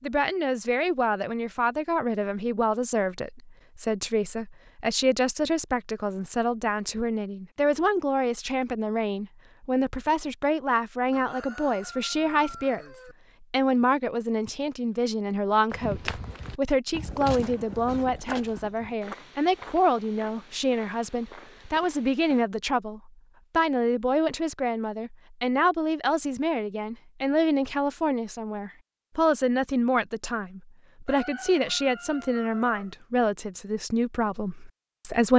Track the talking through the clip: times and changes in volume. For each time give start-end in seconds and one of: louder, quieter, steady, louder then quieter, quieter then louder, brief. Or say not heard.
0.0-35.3 steady.